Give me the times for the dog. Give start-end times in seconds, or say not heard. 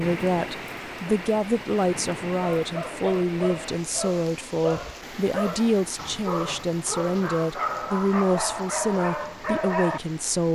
2.4-10.0.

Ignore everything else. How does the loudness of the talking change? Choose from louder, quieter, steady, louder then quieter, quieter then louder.
steady.